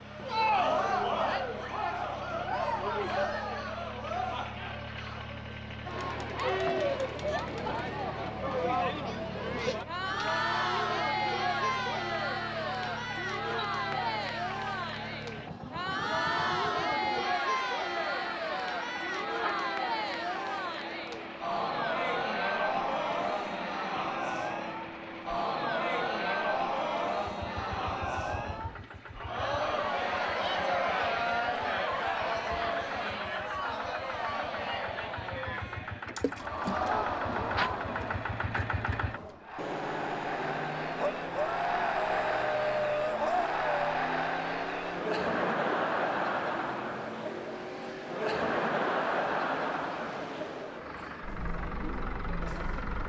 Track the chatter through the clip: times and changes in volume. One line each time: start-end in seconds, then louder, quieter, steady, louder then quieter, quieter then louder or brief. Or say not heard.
0.0-53.0 steady.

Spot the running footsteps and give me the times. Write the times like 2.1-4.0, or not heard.
not heard.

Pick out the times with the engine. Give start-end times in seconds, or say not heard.
0.0-53.0.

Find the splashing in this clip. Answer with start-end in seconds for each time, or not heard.
36.1-36.9.